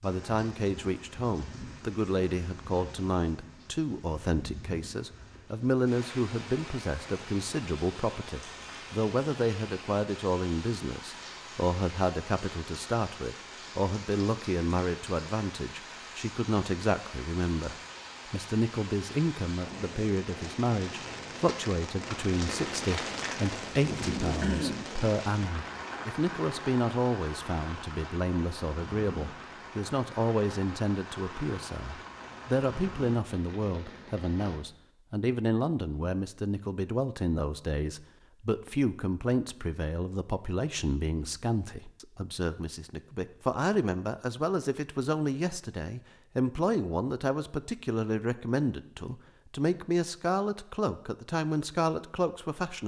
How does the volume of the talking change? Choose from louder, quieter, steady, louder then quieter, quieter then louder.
steady.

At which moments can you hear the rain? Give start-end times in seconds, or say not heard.
0.0-34.6.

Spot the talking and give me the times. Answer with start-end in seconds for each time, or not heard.
0.0-52.8.